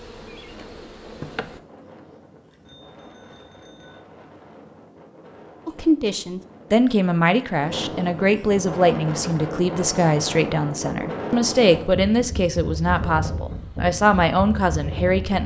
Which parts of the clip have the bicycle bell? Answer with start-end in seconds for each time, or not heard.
2.5-4.0.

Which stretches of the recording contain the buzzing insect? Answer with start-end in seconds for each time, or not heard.
0.0-1.6.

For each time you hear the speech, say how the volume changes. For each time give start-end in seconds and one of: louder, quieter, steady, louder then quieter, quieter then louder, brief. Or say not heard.
5.7-15.4 steady.